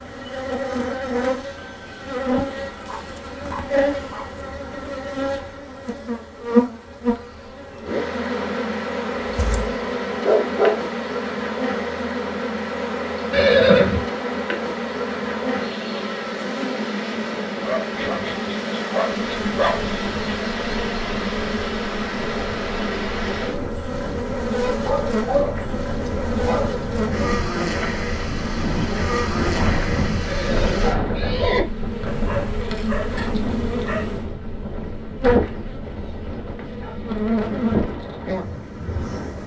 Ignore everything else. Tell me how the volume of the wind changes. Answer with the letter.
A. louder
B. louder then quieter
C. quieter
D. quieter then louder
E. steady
B.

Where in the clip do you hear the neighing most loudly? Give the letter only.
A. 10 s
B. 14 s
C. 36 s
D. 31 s
B.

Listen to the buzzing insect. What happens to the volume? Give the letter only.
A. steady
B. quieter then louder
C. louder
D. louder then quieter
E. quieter
A.